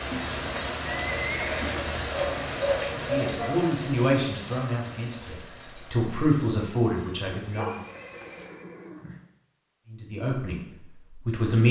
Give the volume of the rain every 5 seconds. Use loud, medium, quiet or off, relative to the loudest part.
loud, quiet, off.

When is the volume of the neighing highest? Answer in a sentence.
The loudest moment of the neighing is at 1 second.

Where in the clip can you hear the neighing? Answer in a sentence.
The neighing can be heard from 0.1 to 1.9 s and from 7.5 to 9.3 s.